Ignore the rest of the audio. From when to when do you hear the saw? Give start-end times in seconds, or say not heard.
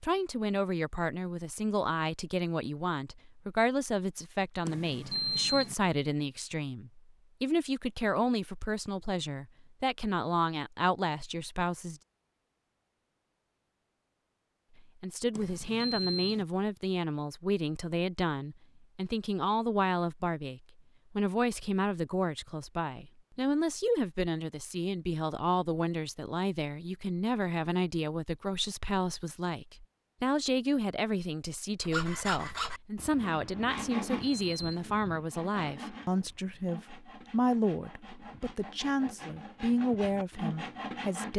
31.8-41.3.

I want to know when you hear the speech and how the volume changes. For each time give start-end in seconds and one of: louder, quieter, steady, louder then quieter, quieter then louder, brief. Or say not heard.
0.0-12.0 steady
14.8-41.3 steady.